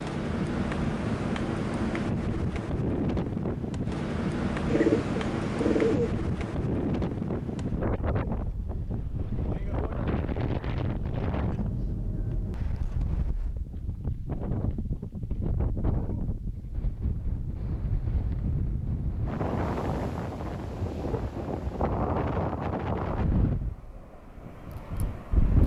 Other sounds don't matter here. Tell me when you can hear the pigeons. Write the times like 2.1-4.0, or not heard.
4.7-6.1.